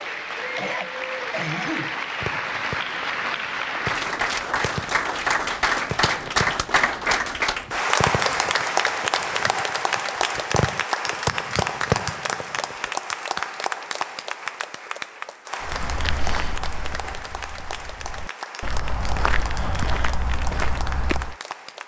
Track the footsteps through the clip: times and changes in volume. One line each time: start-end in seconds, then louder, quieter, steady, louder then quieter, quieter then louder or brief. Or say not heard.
15.6-21.4 quieter then louder.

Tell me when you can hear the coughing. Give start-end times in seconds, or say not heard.
0.6-1.9.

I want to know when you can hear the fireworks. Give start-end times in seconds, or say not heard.
2.2-12.8.